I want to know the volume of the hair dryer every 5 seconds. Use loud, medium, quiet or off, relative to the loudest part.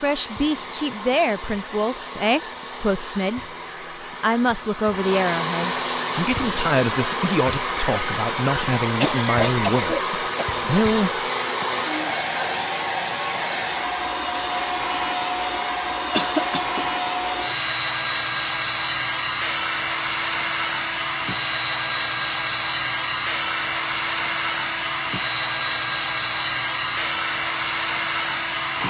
medium, loud, loud, loud, loud, loud.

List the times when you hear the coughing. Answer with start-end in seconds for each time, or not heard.
9.0-10.7, 16.1-16.9.